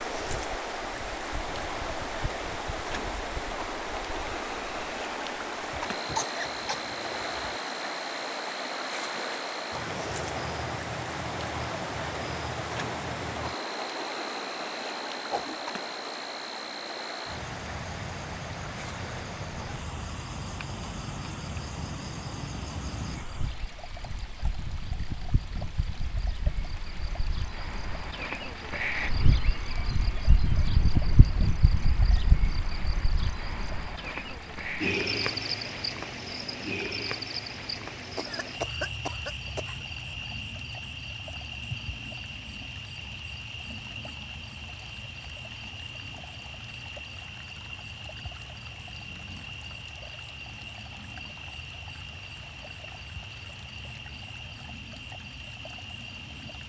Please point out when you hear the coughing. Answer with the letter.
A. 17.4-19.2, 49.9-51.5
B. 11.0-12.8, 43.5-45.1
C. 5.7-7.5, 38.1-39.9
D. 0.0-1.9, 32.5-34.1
C.